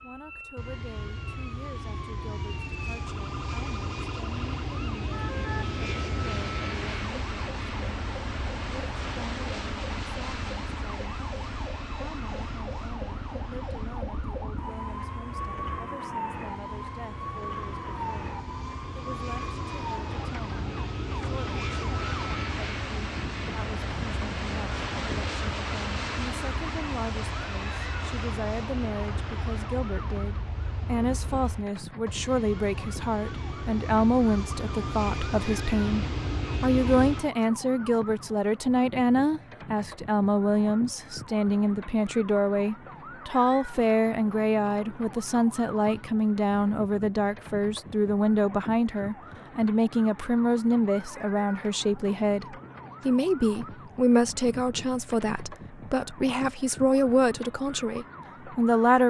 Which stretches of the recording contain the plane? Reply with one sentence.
You can hear the plane from 0.1 to 37.3 s.